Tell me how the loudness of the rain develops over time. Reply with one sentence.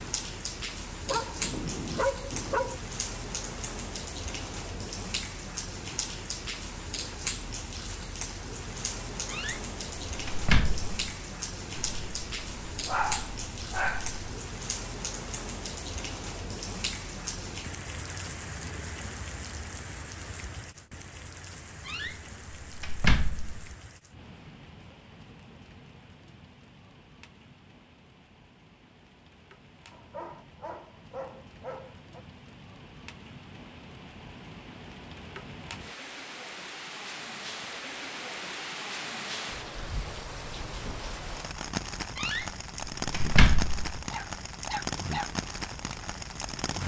The loudness of the rain goes down, then up.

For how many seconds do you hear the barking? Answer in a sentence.
The barking can be heard for 8 seconds in total.